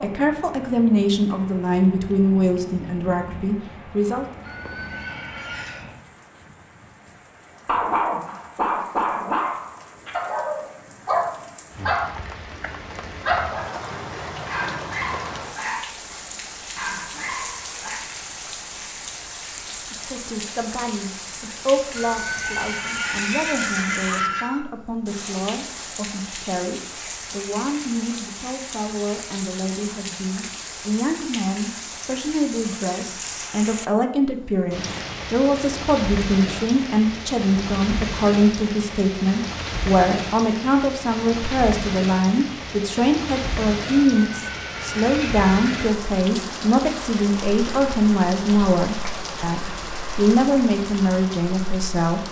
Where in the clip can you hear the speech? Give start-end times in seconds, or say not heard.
0.0-4.2, 19.9-52.2.